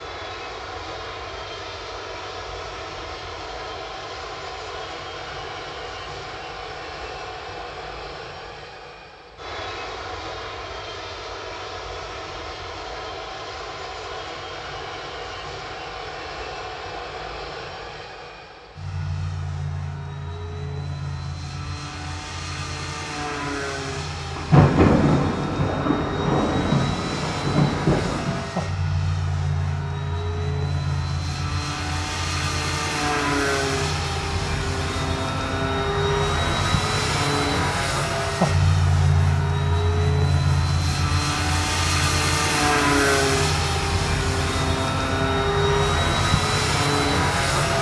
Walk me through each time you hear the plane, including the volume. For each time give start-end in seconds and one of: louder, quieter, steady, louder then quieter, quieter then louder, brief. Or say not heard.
0.0-47.7 louder.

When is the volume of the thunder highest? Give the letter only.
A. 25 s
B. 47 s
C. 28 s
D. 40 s
A.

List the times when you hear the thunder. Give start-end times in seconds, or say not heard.
24.4-28.4.